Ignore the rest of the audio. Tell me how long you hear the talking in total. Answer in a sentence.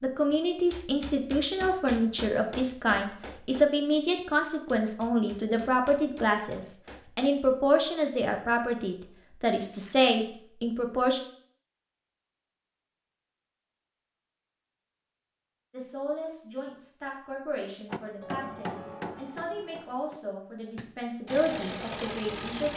You can hear the talking for 18 seconds altogether.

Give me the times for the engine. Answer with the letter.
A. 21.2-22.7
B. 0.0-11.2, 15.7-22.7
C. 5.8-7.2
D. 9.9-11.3
A.